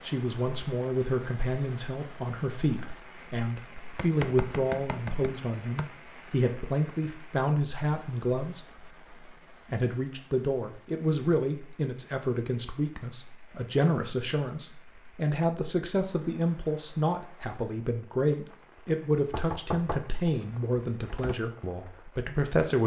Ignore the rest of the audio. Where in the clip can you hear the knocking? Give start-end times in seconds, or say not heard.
4.0-5.8, 19.3-21.4.